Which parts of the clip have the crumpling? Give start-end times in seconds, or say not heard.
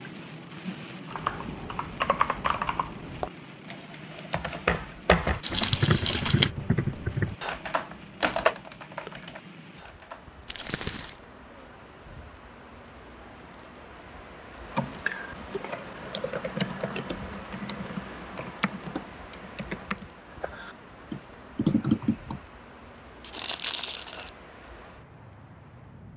5.4-6.5, 10.4-11.2, 23.2-24.3.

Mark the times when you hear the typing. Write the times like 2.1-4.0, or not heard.
1.1-10.7, 14.7-22.4.